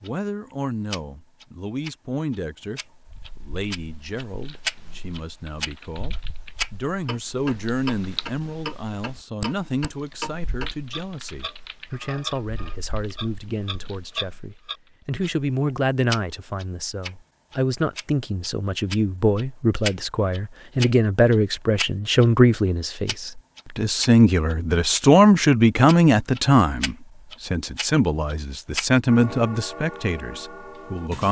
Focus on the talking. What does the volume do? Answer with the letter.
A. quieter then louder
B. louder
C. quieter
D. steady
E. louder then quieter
B.